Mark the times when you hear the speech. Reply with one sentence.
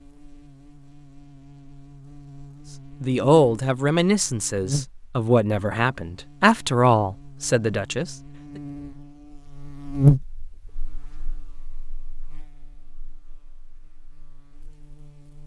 You can hear the speech from 3.0 to 8.2 s.